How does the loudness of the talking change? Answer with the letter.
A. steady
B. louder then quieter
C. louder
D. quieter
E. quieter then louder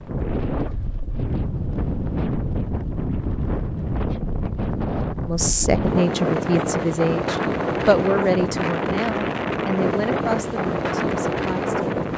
D.